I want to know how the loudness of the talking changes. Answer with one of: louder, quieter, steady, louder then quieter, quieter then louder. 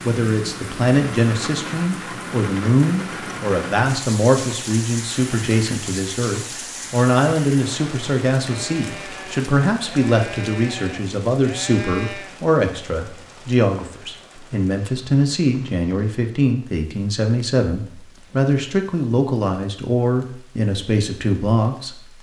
steady.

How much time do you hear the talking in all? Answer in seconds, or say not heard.
22 s.